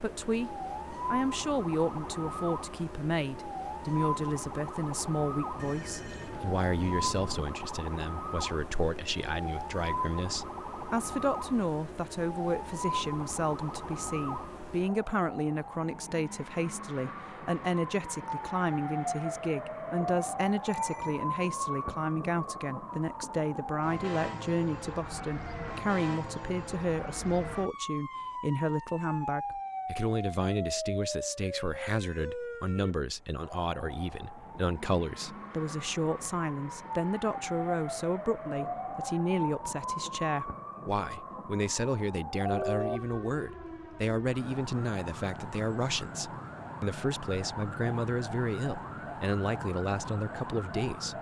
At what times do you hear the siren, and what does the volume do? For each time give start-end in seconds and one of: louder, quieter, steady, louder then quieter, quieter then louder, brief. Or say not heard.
0.0-51.1 steady.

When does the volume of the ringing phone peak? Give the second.
43 s.